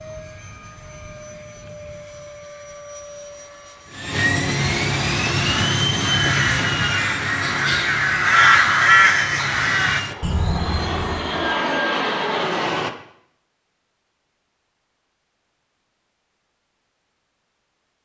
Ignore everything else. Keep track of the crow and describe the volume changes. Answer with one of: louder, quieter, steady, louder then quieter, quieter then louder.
louder then quieter.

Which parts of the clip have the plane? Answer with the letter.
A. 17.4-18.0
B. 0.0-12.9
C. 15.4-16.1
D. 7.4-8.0
B.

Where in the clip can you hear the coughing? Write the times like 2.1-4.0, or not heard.
7.4-8.0.